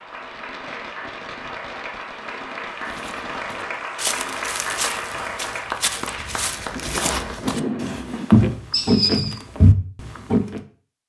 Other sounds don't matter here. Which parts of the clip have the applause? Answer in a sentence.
The applause can be heard from 0.0 to 7.2 s.